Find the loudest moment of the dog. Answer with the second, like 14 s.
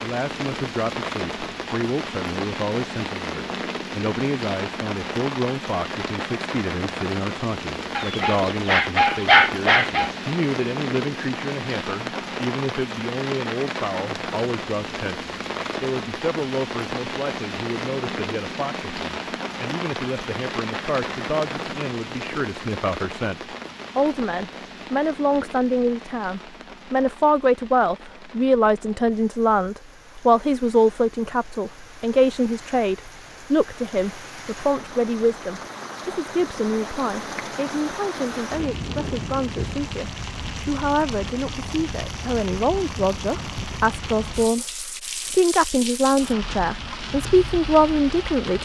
9 s.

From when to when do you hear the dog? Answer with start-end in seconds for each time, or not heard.
8.0-10.1.